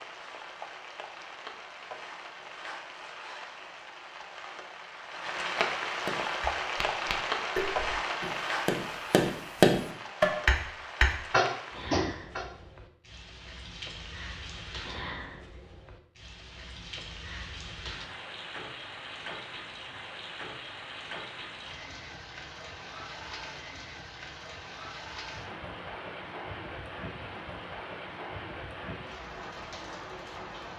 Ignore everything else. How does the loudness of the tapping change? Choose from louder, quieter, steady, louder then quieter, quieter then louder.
louder.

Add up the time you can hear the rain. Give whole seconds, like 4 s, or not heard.
31 s.